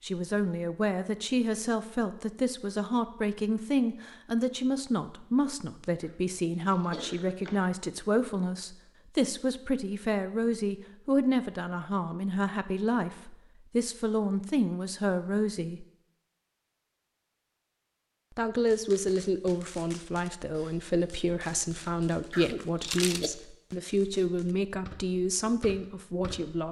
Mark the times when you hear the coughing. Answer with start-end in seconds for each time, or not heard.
6.0-7.7, 22.3-23.3.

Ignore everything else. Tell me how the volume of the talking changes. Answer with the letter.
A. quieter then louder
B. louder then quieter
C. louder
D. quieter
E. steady
E.